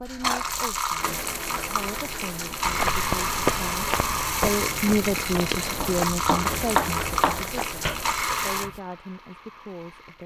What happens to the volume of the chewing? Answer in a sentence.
The loudness of the chewing goes down.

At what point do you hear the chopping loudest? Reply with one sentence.
The loudest moment of the chopping is at 7 seconds.